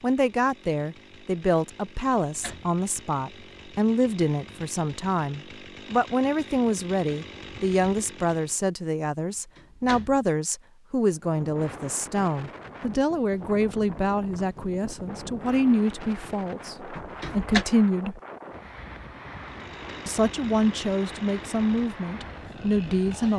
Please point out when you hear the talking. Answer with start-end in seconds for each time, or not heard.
0.0-18.2, 20.1-23.3.